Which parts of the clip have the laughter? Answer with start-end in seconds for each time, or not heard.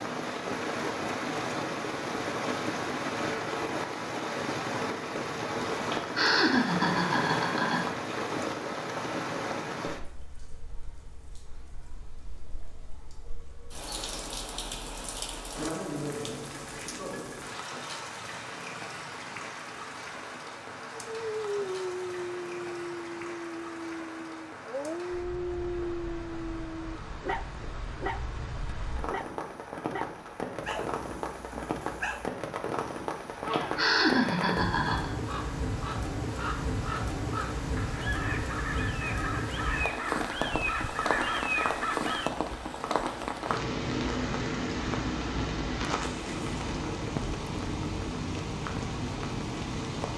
5.9-7.9, 33.5-35.1.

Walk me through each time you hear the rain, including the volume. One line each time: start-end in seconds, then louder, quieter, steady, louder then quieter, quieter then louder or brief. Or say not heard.
0.0-50.1 quieter then louder.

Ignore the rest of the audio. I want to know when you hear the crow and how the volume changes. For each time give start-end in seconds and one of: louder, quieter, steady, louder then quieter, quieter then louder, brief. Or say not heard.
33.3-42.3 louder.